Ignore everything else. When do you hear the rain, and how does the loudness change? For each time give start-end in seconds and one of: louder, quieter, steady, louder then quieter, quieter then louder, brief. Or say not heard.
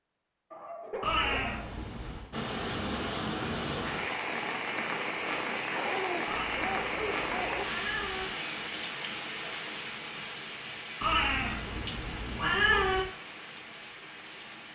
2.3-14.6 quieter.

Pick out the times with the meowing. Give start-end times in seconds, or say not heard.
1.0-2.3, 6.2-8.2, 11.0-13.0.